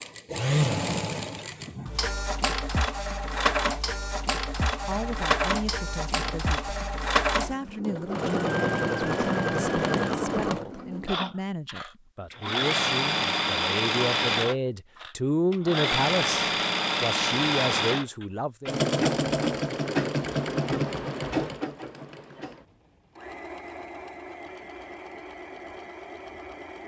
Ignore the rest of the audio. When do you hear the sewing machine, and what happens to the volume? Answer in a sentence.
The sewing machine can be heard from 0.0 to 26.8 s, getting quieter.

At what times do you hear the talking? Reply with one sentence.
You can hear the talking from 4.8 to 18.8 s.